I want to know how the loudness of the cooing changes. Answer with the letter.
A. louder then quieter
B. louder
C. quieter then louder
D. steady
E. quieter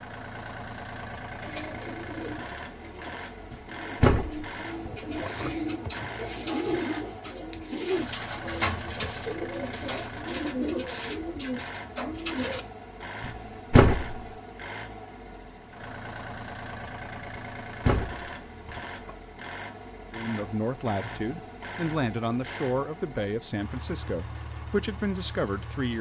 B.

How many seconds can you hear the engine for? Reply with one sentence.
You can hear the engine for 26 seconds altogether.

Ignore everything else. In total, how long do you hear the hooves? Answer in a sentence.
The hooves can't be heard in this clip.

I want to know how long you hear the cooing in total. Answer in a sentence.
The cooing can be heard for 11 seconds in total.